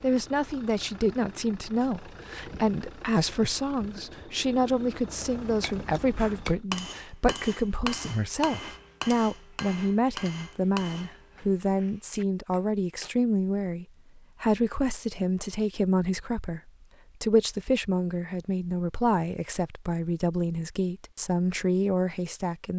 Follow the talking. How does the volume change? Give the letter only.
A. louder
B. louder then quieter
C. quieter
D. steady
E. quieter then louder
D.